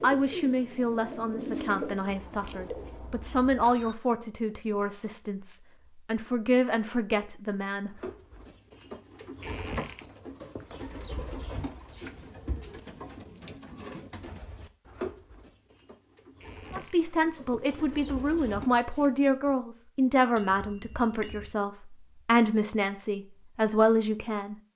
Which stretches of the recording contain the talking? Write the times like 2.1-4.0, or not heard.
0.0-8.0, 16.7-24.6.